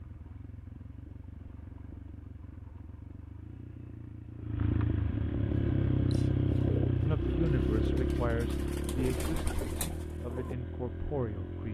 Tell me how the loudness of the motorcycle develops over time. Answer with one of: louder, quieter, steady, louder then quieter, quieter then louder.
louder then quieter.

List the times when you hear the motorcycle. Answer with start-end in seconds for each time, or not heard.
0.0-11.6.